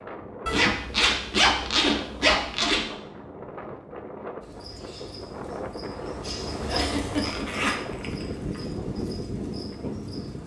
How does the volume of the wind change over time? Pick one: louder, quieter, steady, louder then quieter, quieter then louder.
louder.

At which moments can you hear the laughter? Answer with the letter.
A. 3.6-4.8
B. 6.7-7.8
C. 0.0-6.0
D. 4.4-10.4
B.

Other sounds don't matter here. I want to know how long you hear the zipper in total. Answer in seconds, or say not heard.
4 s.